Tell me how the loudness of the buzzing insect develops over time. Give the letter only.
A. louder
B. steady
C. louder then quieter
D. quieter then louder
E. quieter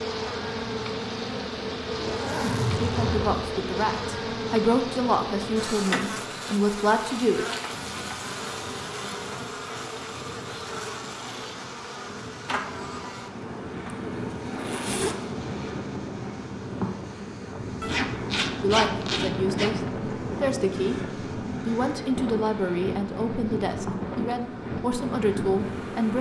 E.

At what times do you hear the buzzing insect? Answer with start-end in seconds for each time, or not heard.
0.0-26.1.